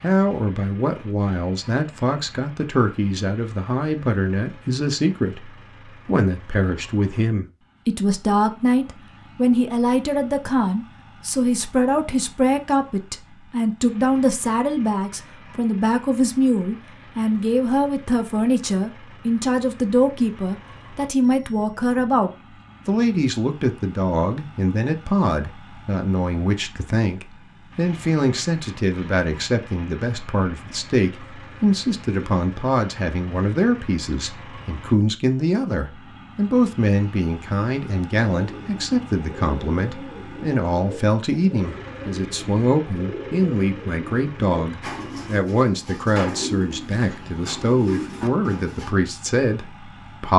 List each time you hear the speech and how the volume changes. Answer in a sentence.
You can hear the speech from 0.0 to 50.3 s, at a steady volume.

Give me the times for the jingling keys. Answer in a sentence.
You can't hear the jingling keys here.